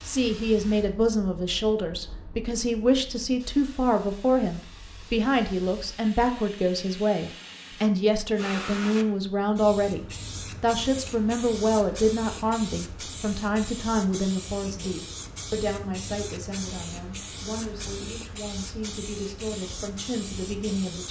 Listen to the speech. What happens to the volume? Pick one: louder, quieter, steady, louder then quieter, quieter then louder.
quieter.